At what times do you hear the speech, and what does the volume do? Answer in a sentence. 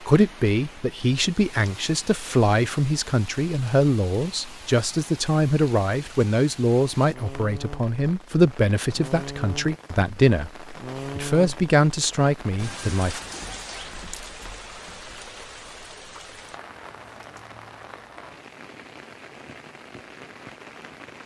You can hear the speech from 0.1 to 13.2 s, at a steady volume.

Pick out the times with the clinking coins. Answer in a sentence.
You can hear the clinking coins from 13.2 to 15.2 s.